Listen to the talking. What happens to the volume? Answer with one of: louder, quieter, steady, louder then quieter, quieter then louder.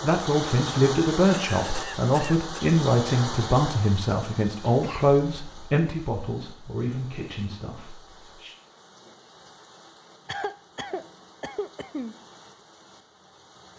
quieter.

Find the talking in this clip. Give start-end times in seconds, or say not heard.
0.0-8.6.